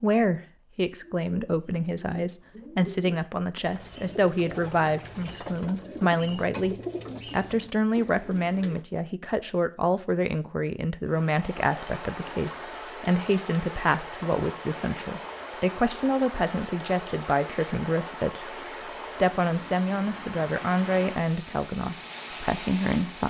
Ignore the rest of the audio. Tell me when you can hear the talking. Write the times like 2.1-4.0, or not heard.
0.0-23.2.